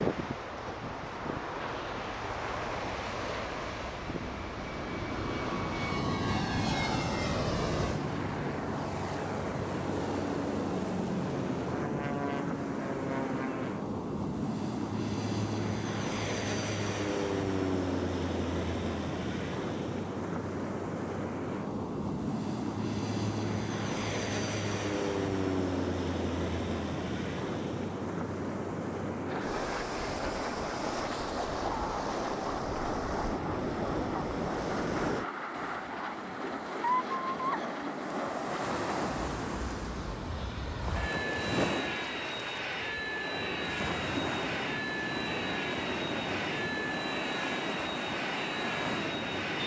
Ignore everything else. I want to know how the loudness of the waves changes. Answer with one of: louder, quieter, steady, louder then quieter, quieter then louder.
steady.